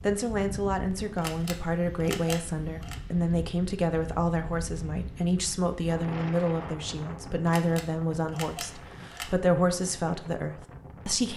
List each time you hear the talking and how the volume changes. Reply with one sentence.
The talking can be heard from 0.0 to 11.3 s, at a steady volume.